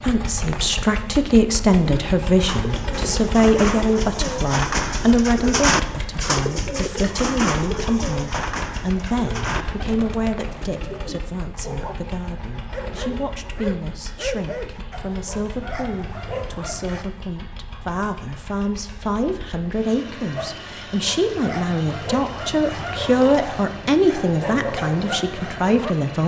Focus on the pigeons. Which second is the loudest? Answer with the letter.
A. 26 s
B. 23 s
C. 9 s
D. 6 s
D.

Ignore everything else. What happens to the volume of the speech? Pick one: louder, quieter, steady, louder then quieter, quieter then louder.
quieter then louder.